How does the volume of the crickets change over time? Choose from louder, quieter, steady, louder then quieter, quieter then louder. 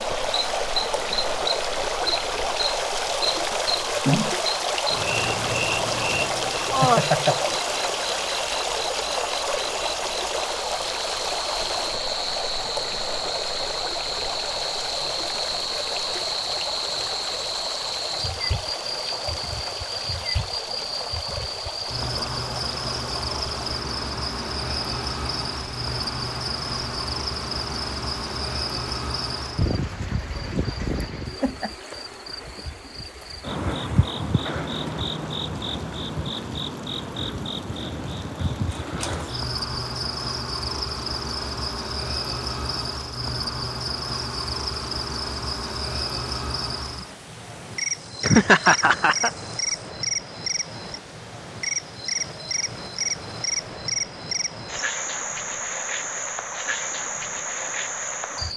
steady.